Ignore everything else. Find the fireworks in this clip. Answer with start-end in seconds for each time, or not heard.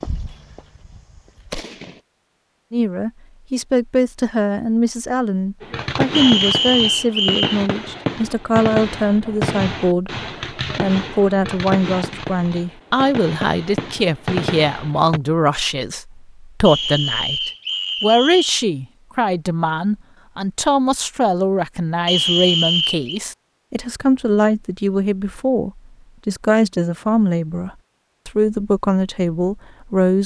0.0-2.0, 5.6-15.2.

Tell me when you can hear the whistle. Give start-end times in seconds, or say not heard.
6.1-7.6, 16.6-18.6, 22.1-23.2.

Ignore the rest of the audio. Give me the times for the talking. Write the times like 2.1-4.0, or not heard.
2.7-10.2, 10.8-30.2.